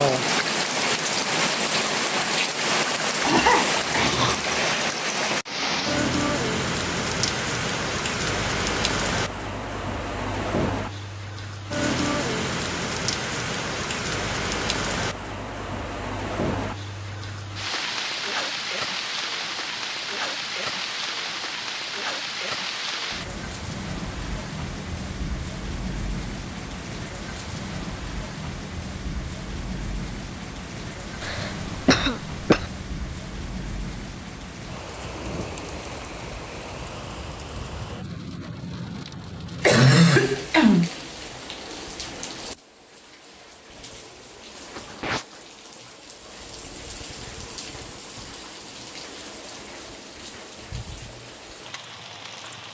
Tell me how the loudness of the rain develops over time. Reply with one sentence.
The loudness of the rain goes down.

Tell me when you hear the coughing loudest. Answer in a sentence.
The volume of the coughing peaks at 40 seconds.